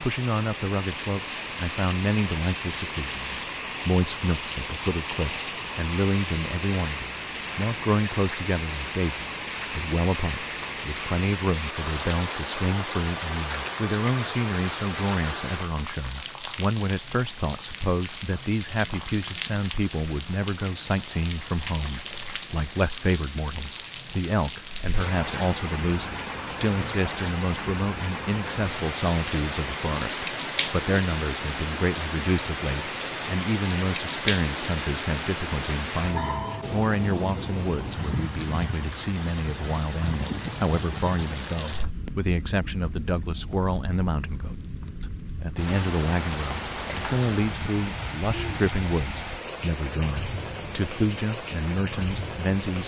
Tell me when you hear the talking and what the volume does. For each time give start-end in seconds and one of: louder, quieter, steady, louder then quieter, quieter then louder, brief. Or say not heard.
0.0-52.8 steady.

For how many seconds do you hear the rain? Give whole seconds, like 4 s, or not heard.
53 s.